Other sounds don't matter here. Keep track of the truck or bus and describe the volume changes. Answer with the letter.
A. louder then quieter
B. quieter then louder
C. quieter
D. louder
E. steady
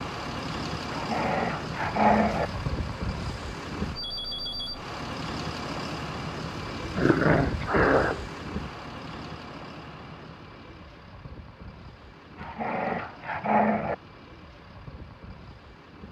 C.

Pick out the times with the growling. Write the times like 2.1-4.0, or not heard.
0.9-2.5, 7.0-8.2, 12.3-13.9.